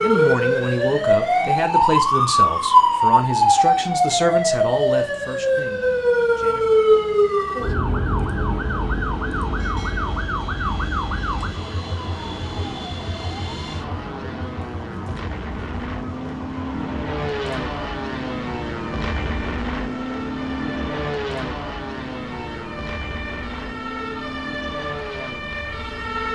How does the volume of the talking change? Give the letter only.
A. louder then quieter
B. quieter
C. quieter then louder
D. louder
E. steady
B.